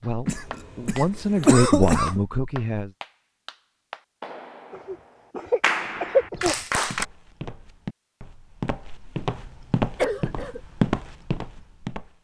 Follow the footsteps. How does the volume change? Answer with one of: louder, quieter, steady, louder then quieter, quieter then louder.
louder.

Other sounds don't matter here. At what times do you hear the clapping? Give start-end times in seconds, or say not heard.
0.0-7.0.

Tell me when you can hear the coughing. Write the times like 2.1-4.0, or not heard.
0.2-2.2, 4.7-6.5, 9.9-10.6.